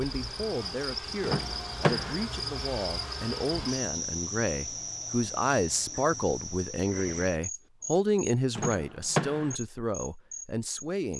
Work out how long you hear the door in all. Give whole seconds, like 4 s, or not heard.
2 s.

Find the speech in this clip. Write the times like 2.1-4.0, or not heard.
0.0-11.1.